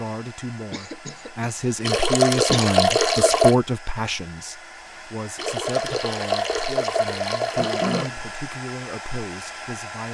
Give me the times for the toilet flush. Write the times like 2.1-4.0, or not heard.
1.9-3.5, 5.3-8.1.